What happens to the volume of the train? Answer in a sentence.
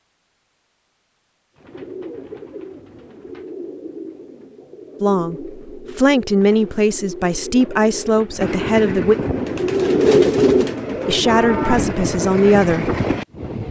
The volume of the train goes down, then up.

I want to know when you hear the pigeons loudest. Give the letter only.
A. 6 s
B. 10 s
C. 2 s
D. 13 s
B.